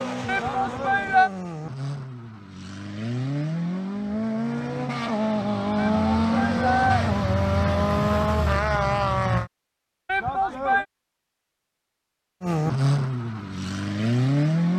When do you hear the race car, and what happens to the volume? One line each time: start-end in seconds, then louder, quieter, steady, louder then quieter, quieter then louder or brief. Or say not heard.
0.0-9.5 louder
12.4-14.7 brief.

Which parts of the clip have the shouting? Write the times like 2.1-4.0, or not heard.
0.2-1.3, 5.8-7.0, 10.1-10.8.